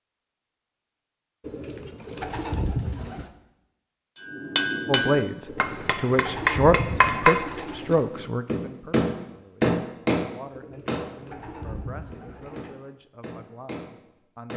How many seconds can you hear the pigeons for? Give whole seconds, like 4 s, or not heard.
7 s.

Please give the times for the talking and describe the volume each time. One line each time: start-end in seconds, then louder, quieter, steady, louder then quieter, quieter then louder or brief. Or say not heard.
4.8-14.5 quieter.